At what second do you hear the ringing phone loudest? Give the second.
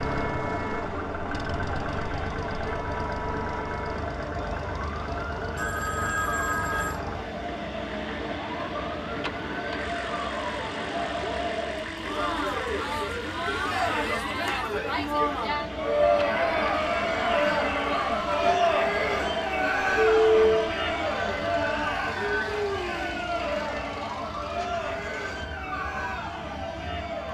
20 s.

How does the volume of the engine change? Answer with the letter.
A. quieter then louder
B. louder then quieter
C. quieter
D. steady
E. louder
C.